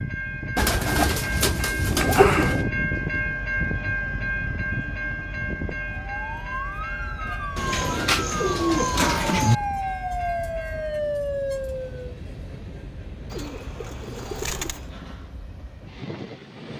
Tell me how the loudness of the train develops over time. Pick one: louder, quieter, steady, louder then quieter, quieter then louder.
quieter.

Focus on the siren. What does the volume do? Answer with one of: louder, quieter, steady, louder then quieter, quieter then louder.
louder.